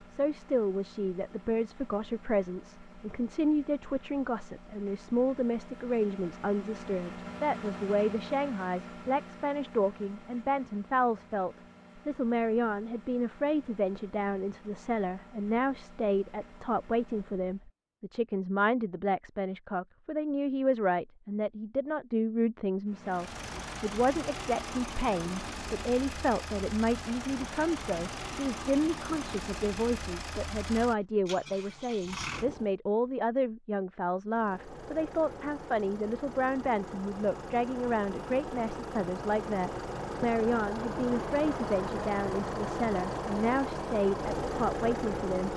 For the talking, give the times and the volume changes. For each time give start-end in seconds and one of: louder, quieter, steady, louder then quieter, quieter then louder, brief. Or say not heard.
0.1-45.5 steady.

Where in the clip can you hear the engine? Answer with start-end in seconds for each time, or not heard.
0.0-17.7, 22.9-32.8, 34.2-45.5.